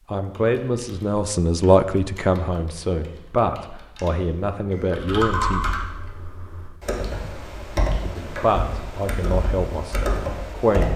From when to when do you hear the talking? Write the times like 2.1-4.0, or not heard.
0.1-5.7, 8.0-10.9.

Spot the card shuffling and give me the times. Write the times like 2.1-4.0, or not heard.
not heard.